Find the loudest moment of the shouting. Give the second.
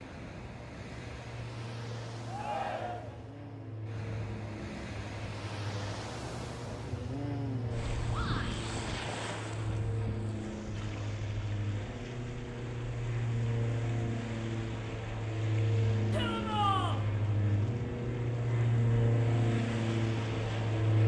17 s.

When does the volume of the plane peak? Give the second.
19 s.